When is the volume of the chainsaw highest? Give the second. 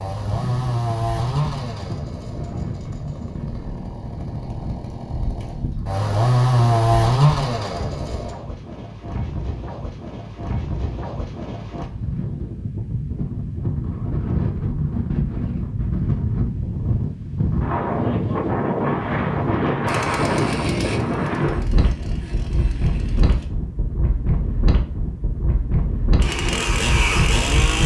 7 s.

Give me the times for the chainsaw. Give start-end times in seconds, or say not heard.
0.0-8.3, 19.9-23.5, 26.2-27.8.